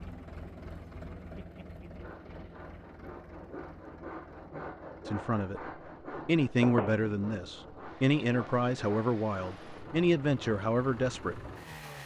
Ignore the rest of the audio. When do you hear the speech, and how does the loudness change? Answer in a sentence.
You can hear the speech briefly from 5.0 to 5.6 s; and from 6.2 to 11.4 s, at a steady volume.